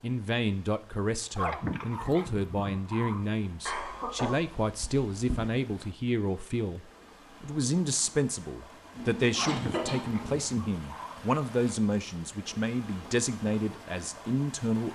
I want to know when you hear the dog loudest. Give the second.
2 s.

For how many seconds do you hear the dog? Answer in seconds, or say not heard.
4 s.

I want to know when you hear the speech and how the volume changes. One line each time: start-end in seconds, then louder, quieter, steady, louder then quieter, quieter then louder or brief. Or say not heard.
0.0-14.9 steady.